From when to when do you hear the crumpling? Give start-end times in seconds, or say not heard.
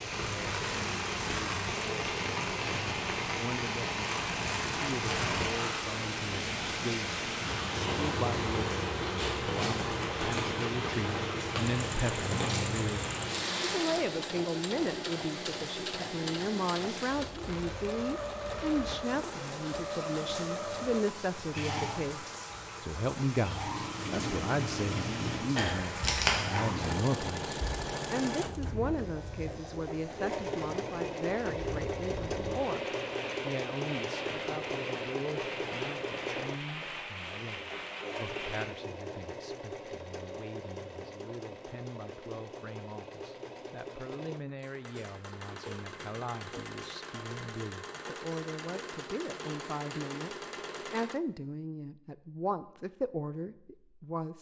25.6-26.9.